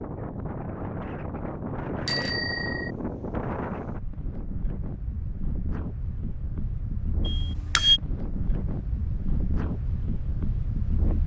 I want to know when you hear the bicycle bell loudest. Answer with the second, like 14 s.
8 s.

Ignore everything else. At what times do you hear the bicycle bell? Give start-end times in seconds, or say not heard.
2.0-2.9, 7.2-8.0.